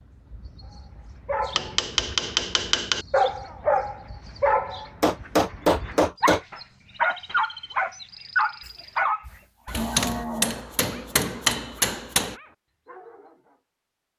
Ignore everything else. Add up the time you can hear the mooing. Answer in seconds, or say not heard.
2 s.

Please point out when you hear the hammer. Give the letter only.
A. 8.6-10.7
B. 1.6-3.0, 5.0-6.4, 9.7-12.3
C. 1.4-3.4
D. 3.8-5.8
B.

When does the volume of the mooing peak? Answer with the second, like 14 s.
10 s.